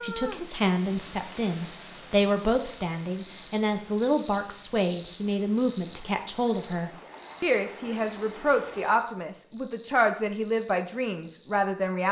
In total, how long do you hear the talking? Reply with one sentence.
You can hear the talking for 12 seconds altogether.